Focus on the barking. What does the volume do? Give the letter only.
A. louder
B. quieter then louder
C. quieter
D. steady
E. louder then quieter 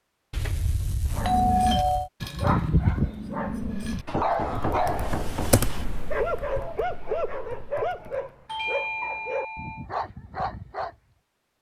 C.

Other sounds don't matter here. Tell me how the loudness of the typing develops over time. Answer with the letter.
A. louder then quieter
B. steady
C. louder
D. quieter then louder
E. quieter
A.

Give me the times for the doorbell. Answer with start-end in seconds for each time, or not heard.
0.3-2.1, 8.4-9.8.